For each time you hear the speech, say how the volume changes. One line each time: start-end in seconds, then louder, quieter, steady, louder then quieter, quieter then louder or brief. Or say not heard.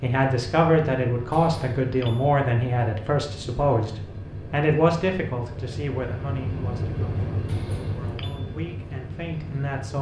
0.0-9.9 quieter.